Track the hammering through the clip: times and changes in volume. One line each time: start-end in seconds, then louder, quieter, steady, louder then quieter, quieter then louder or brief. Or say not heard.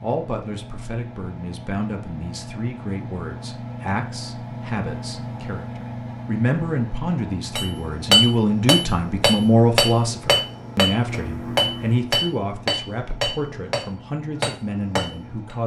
7.5-15.6 quieter.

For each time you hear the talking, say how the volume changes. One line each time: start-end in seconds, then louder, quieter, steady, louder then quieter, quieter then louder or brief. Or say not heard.
0.0-15.6 louder then quieter.